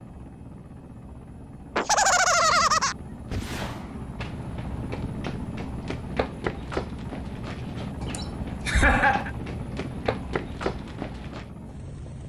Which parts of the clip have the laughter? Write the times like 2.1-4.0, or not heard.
1.8-3.0, 8.0-9.3.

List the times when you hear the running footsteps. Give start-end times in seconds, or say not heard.
3.4-11.4.